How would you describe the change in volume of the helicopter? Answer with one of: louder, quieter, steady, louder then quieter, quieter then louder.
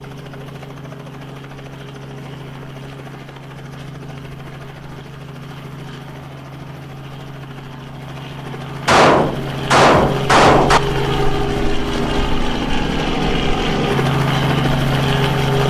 louder.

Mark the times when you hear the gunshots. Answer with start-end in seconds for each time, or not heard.
8.8-10.8.